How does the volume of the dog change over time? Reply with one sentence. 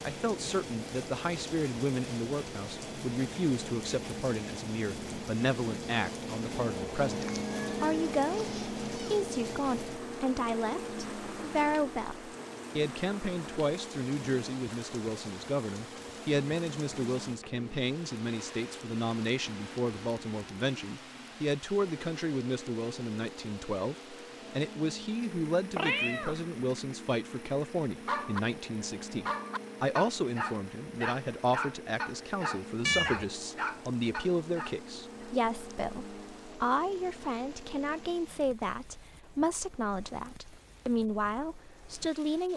The loudness of the dog stays about the same.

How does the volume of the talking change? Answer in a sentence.
The loudness of the talking stays about the same.